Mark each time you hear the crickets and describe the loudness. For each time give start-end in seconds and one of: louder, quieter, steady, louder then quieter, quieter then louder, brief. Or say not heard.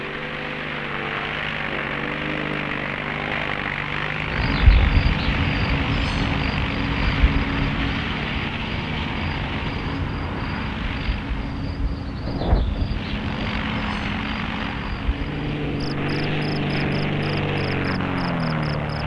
4.2-19.0 quieter.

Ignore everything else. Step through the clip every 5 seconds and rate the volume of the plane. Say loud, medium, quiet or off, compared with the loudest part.
loud, loud, medium, loud.